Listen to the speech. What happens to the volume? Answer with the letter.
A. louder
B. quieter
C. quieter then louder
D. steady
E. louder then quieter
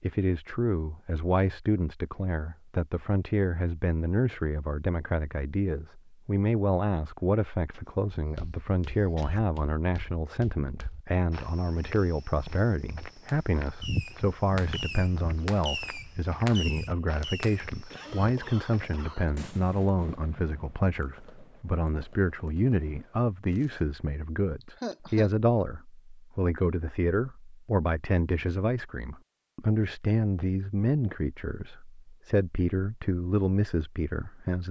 D.